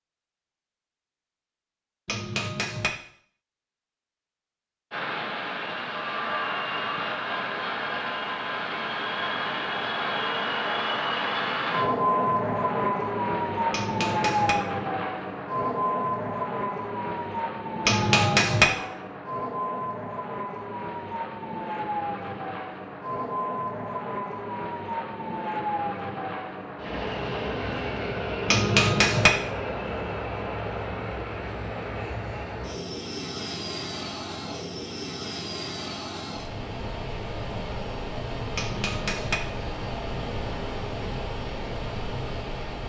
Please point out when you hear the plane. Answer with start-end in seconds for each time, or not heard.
4.9-42.8.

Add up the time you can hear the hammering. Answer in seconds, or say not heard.
4 s.